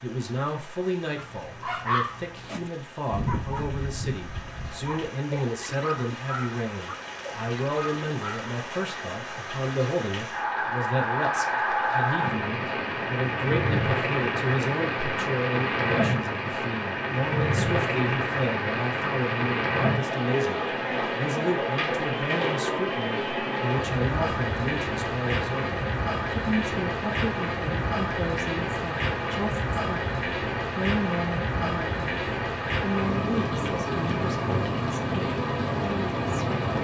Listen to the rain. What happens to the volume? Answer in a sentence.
The volume of the rain goes up.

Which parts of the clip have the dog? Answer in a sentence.
The dog can be heard from 1.1 to 8.5 s.